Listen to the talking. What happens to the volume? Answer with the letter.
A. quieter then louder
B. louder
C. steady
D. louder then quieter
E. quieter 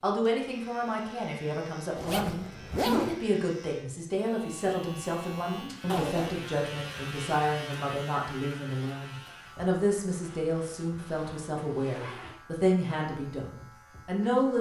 C.